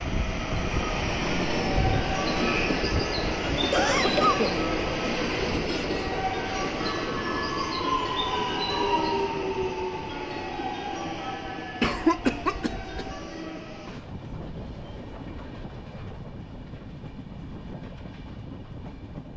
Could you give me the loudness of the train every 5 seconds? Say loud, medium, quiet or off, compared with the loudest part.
loud, loud, medium, quiet.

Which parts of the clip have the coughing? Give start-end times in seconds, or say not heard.
3.7-4.5, 11.8-13.2.